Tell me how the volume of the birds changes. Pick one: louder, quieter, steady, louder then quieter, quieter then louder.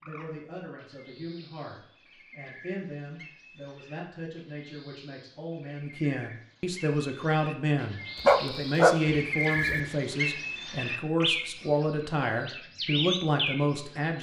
louder.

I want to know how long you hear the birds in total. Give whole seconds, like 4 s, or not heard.
14 s.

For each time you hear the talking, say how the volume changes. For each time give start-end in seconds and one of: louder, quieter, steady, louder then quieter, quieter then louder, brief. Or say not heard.
0.0-14.1 louder.